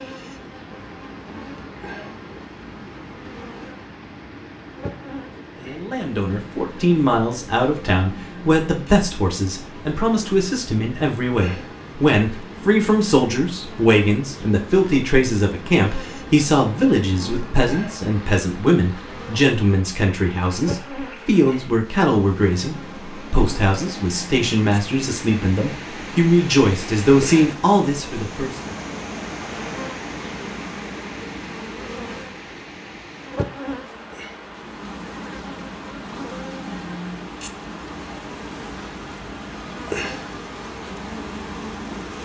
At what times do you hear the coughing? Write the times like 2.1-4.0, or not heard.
not heard.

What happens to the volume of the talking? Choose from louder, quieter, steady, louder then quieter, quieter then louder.
steady.